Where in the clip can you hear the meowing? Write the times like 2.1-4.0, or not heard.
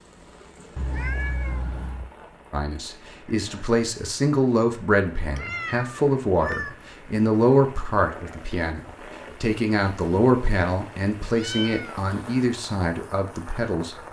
0.8-2.1, 5.3-6.8, 11.3-12.3.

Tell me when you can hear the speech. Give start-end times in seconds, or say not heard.
2.5-14.0.